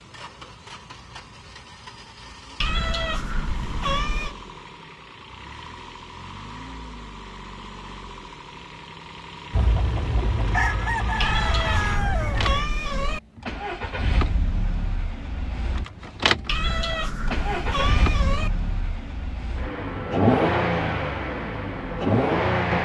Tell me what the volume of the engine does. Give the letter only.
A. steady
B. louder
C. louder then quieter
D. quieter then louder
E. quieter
B.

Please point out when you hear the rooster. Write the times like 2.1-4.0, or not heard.
9.5-12.7.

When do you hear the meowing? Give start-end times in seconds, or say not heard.
2.6-4.3, 11.2-13.2, 16.4-18.5.